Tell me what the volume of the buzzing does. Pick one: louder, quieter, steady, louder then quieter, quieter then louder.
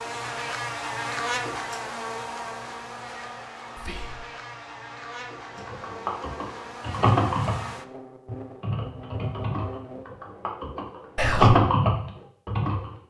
quieter.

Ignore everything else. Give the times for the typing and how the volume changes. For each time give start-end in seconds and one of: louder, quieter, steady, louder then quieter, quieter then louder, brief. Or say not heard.
5.7-12.9 quieter then louder.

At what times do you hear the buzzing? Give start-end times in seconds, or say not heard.
0.0-10.1.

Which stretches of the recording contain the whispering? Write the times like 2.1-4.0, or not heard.
3.8-4.3, 11.2-11.6.